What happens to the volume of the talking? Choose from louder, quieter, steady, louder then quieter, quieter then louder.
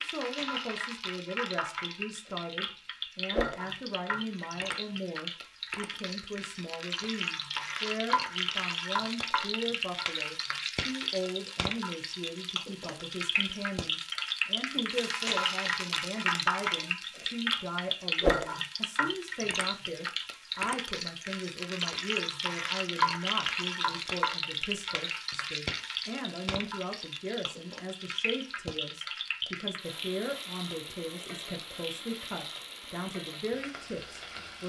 steady.